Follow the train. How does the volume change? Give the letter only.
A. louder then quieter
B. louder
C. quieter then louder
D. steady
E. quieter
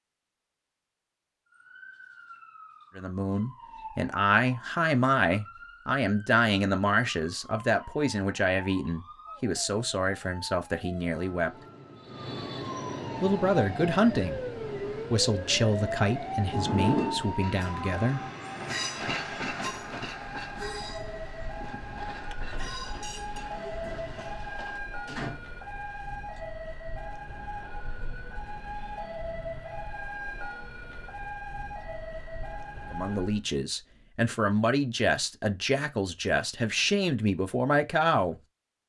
A.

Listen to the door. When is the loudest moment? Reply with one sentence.
The loudest moment of the door is at 17 seconds.